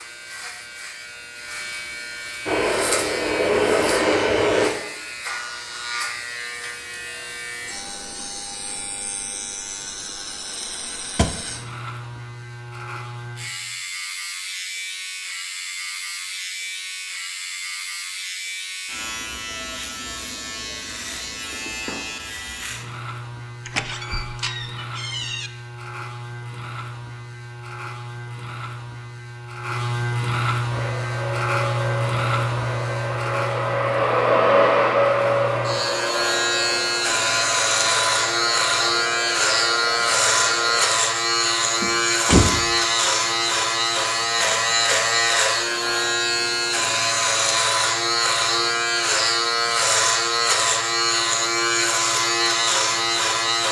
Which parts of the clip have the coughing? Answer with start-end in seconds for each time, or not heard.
not heard.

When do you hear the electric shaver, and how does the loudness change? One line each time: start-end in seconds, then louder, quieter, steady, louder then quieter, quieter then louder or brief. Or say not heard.
0.0-53.6 louder.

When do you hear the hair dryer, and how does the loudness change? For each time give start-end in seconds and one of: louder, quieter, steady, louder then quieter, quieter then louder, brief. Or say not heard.
2.5-4.7 brief
30.7-40.9 louder then quieter.